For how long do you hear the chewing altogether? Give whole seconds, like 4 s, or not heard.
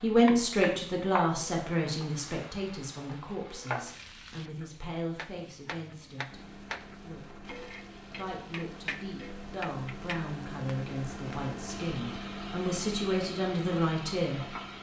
not heard.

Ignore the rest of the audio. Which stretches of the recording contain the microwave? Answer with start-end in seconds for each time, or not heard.
6.2-14.7.